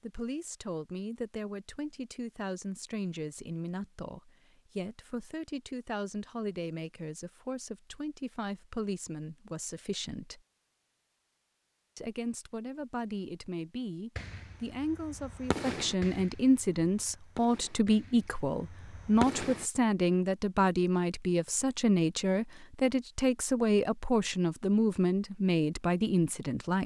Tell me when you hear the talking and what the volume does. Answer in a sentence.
The talking can be heard from 0.0 to 10.4 s, at a steady volume; and from 11.9 to 26.8 s, getting louder.